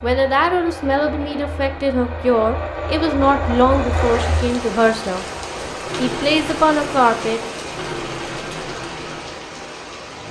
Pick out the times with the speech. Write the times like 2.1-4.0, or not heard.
0.0-5.2, 6.0-7.4.